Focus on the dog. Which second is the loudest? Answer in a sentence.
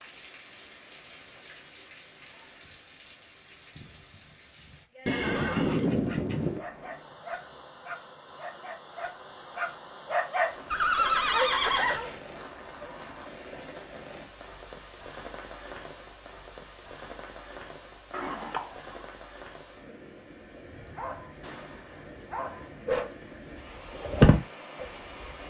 The loudest moment of the dog is at 24 seconds.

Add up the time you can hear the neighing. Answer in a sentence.
The neighing can be heard for 4 seconds in total.